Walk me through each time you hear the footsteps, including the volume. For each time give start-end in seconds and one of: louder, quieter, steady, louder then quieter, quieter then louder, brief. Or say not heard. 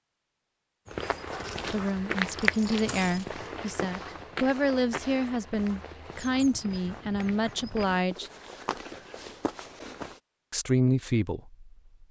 0.8-10.2 quieter.